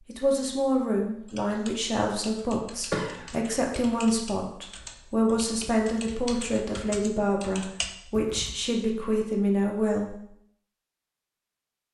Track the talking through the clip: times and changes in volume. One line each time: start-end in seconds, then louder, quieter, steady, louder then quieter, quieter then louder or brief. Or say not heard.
0.1-10.2 steady.